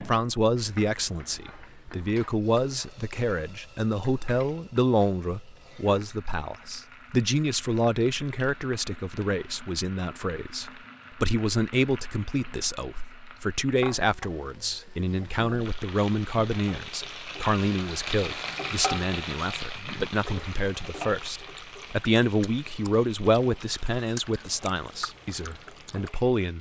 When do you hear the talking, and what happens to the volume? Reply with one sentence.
The talking can be heard from 0.0 to 26.5 s, at a steady volume.